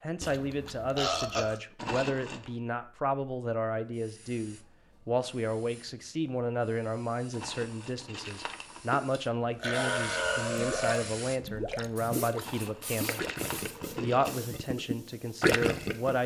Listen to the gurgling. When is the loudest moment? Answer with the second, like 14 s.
16 s.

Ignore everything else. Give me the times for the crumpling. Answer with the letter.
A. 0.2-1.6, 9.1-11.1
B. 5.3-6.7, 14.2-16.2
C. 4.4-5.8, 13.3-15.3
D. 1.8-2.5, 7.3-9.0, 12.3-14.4
D.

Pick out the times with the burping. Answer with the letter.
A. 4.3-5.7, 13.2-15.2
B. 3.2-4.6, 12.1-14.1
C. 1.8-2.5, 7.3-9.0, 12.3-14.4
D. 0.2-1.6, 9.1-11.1
D.